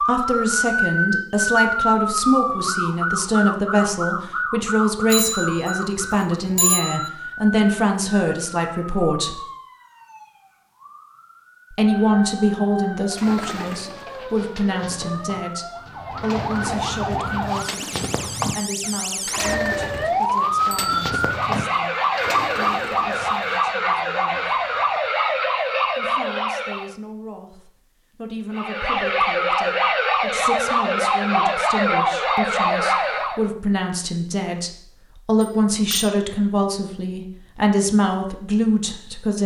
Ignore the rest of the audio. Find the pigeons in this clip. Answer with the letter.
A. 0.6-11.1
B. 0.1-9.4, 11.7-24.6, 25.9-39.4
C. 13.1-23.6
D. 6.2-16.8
C.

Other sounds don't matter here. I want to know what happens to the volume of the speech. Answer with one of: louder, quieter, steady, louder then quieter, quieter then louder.
quieter then louder.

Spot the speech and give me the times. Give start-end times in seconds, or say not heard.
0.1-9.4, 11.7-24.6, 25.9-39.4.